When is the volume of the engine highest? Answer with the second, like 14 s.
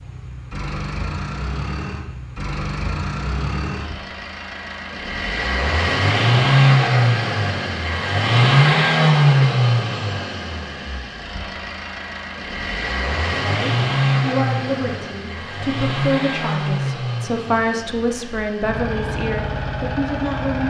9 s.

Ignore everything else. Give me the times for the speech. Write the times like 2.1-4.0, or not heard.
13.4-20.6.